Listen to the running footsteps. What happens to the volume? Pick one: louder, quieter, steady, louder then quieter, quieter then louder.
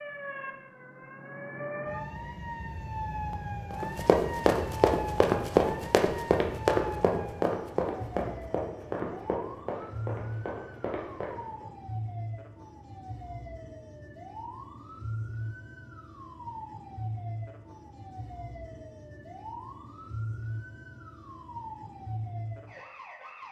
quieter.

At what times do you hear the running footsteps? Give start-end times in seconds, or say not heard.
3.7-11.7.